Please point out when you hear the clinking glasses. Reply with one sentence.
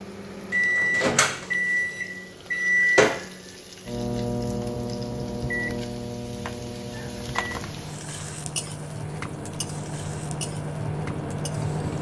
The clinking glasses can't be heard in this clip.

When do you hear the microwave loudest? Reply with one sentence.
The volume of the microwave peaks at 3 seconds.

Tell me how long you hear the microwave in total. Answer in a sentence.
The microwave can be heard for 12 seconds in total.